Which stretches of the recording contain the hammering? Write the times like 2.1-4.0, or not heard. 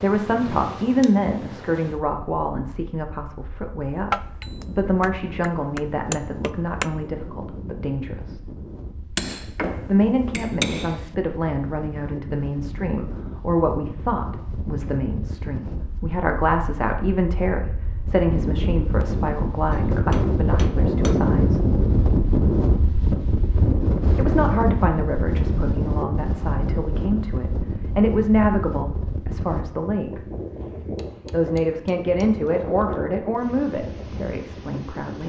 4.1-6.8, 9.2-11.0, 19.7-21.4, 30.9-33.0.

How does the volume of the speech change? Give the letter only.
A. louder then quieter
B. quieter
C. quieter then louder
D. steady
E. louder
D.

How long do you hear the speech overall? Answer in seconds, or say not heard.
30 s.